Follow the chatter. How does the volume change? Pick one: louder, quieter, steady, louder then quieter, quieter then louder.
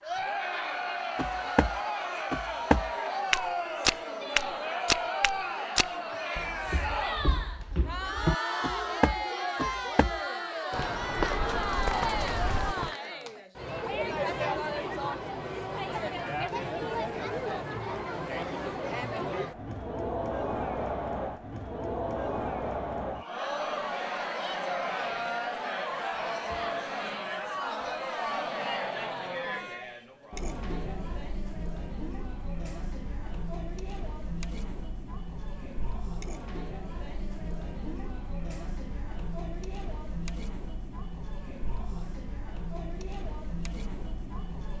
quieter.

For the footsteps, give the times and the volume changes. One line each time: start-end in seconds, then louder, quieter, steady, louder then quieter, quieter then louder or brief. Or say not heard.
1.1-12.9 quieter then louder.